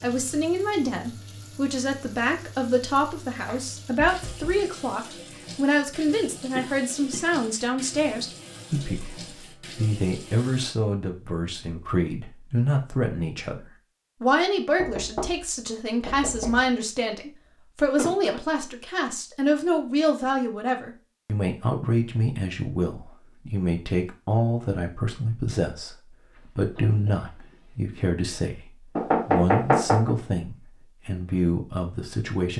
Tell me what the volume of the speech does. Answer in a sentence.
The volume of the speech stays about the same.